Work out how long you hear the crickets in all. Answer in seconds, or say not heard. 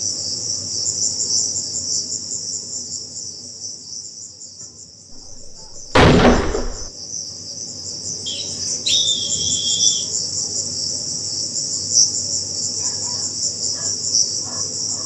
15 s.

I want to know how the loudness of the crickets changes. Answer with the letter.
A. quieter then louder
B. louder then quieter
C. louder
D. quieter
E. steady
A.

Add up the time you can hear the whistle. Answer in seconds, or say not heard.
2 s.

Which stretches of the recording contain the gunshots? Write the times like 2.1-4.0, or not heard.
5.1-6.9.